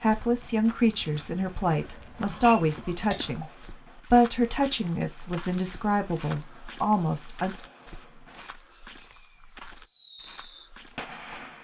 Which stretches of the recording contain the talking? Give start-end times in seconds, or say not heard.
0.0-7.5.